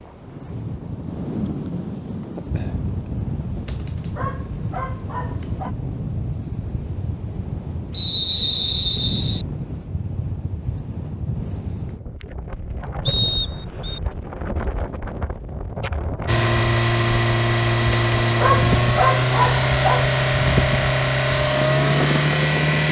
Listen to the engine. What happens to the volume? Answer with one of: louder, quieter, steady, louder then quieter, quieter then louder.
steady.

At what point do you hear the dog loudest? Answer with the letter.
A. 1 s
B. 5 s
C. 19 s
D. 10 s
C.